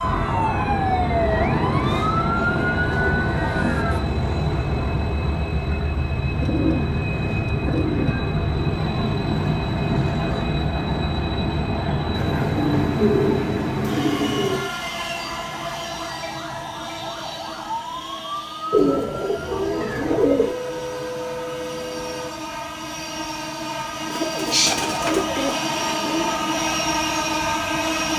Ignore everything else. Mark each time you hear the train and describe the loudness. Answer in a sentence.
The train can be heard from 0.0 to 28.1 s, getting quieter then louder.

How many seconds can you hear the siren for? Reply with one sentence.
The siren can be heard for 11 seconds in total.